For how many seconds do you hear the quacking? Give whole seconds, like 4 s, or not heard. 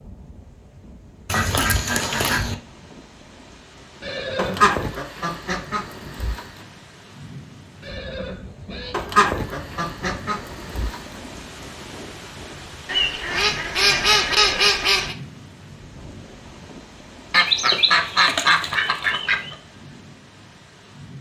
10 s.